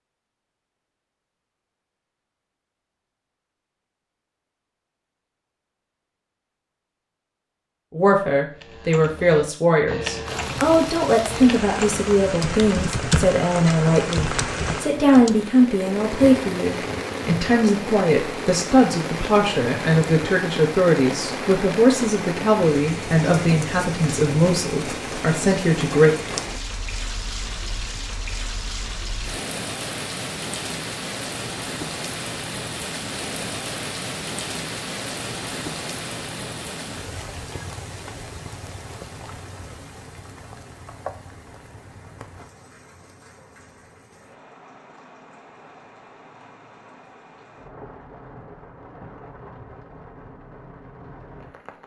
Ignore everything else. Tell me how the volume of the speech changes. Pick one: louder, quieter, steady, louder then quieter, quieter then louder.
steady.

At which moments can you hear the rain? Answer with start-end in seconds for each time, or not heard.
10.2-51.8.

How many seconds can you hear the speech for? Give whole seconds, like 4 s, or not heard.
18 s.